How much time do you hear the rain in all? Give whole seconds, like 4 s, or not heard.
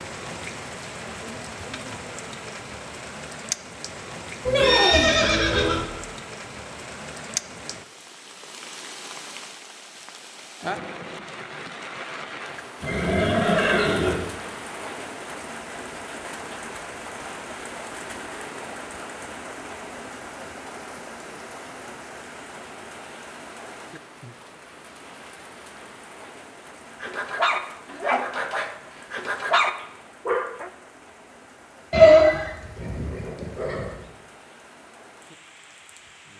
36 s.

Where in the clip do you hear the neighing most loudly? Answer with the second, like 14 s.
32 s.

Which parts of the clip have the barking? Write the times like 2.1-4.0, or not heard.
27.0-30.7.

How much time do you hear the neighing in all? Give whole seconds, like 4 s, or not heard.
5 s.